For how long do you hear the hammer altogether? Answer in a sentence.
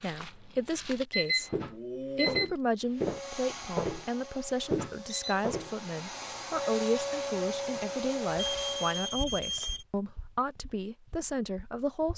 The hammer can't be heard in this clip.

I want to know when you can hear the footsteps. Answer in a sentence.
You can hear the footsteps from 0.0 to 5.8 s and from 9.1 to 12.1 s.